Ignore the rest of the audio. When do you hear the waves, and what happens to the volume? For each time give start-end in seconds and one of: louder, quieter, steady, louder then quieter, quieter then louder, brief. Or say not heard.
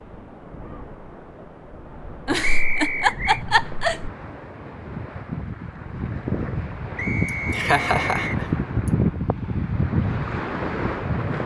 0.0-11.4 louder.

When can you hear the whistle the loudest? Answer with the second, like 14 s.
3 s.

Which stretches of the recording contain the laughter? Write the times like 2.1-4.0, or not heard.
2.2-4.1, 7.2-8.9.